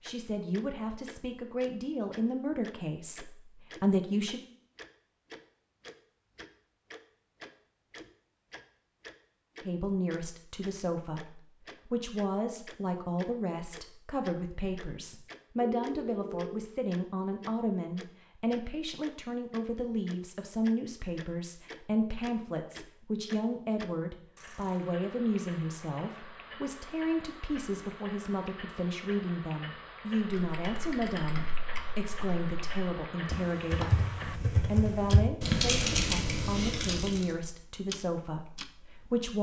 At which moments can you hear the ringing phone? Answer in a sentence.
The ringing phone can be heard from 15.6 to 16.6 s.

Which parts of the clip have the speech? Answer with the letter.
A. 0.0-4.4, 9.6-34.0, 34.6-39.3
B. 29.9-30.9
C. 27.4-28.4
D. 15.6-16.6
A.